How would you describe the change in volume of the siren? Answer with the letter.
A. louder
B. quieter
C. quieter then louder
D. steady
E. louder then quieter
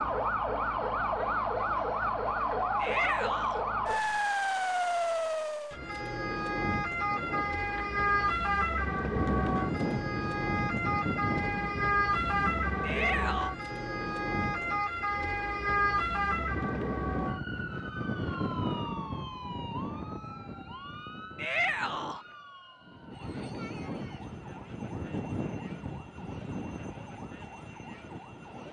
B.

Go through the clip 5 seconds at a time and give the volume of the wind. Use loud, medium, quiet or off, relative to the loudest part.
off, loud, loud, loud, medium, medium.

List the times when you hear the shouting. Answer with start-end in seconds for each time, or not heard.
2.8-3.6, 12.8-13.5, 21.4-22.2.